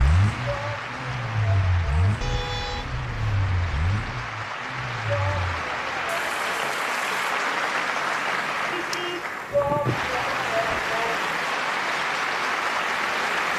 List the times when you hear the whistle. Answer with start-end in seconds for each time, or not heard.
not heard.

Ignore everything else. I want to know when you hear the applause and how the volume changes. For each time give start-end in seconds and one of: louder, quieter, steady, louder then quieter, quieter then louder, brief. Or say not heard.
0.0-13.5 louder.